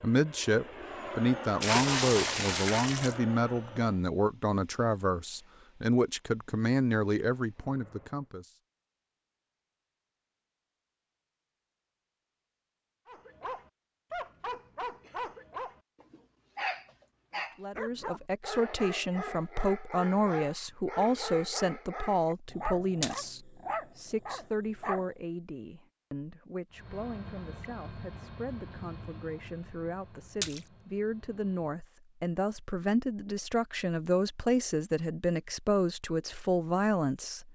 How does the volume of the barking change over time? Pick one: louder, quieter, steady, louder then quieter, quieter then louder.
steady.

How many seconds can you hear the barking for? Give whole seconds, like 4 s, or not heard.
12 s.